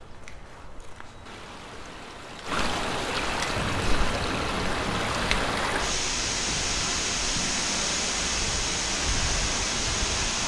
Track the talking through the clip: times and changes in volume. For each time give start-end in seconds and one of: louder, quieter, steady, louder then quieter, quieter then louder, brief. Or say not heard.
not heard.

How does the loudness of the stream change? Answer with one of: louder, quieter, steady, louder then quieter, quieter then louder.
louder.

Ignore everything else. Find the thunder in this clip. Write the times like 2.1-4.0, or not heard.
3.5-5.5.